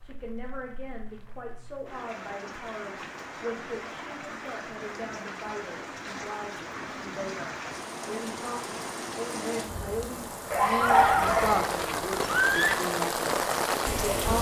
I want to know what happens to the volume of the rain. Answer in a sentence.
The loudness of the rain goes up.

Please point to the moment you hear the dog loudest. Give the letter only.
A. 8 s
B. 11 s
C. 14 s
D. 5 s
B.